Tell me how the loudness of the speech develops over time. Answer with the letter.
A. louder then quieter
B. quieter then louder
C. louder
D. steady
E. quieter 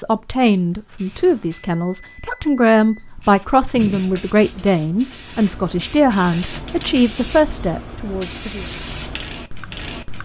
D.